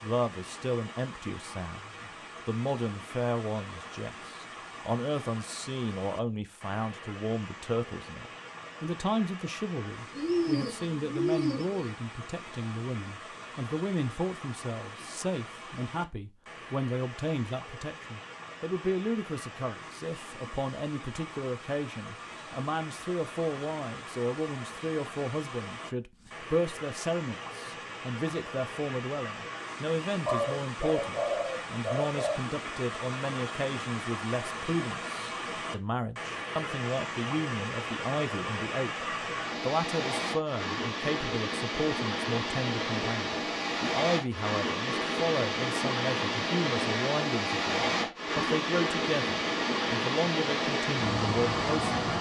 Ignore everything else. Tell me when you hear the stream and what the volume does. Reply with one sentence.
You can hear the stream from 0.0 to 52.1 s, getting louder.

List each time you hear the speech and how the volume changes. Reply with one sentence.
You can hear the speech from 0.0 to 51.9 s, at a steady volume.